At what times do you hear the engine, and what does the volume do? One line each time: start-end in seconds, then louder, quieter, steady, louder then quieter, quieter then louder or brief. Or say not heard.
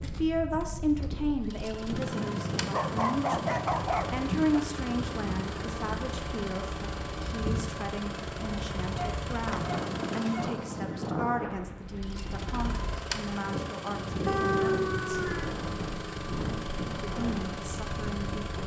0.0-18.6 steady.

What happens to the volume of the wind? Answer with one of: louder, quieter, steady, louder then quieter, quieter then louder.
steady.